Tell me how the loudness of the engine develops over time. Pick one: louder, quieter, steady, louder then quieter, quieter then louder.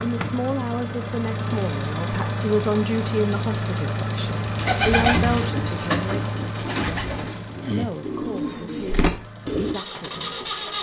quieter.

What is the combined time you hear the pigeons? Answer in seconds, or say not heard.
5 s.